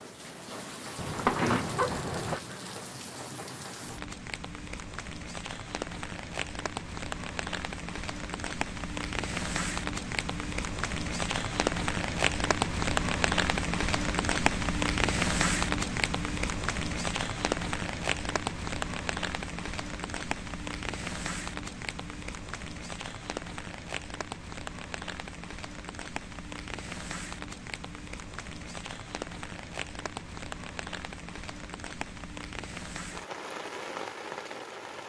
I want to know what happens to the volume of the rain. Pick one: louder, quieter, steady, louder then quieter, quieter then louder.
louder then quieter.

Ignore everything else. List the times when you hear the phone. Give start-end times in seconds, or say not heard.
0.9-2.4.